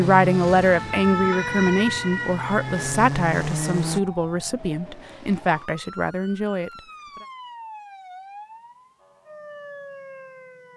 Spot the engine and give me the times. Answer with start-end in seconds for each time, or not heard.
0.0-4.0.